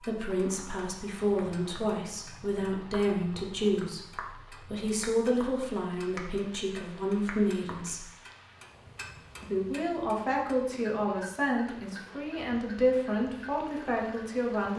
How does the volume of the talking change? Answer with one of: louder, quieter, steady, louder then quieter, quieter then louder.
steady.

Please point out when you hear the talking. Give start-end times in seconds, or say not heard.
0.0-8.1, 9.4-14.7.